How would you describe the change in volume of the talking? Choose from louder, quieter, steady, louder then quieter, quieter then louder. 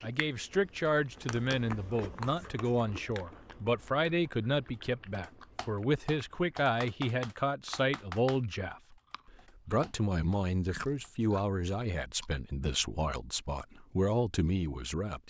steady.